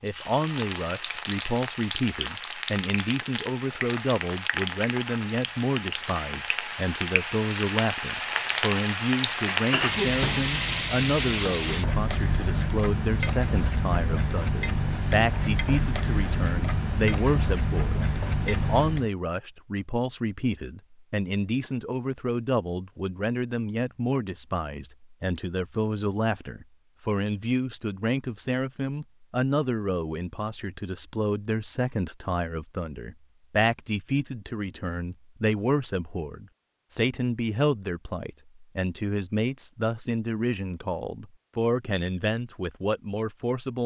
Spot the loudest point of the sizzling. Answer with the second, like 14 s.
10 s.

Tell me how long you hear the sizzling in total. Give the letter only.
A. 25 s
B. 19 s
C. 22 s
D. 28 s
B.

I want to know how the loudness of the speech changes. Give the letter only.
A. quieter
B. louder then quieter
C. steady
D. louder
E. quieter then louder
C.